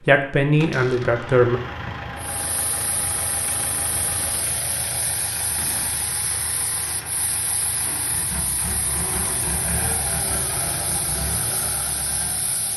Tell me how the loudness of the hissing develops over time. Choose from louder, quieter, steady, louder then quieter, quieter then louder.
steady.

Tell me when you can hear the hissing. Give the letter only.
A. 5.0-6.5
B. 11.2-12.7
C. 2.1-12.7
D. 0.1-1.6
C.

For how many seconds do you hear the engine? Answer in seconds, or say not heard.
13 s.